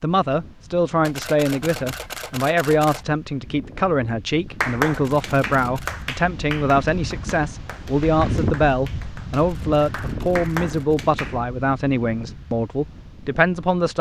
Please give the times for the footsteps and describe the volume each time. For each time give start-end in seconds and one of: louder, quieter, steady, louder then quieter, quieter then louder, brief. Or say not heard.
not heard.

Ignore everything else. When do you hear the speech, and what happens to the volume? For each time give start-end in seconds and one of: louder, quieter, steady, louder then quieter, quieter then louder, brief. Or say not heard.
0.0-13.9 steady.